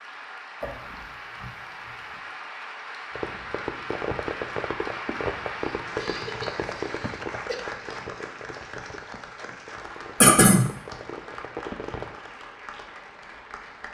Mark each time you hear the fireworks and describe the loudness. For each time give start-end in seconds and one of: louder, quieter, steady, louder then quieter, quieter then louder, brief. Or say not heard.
3.1-12.2 quieter then louder.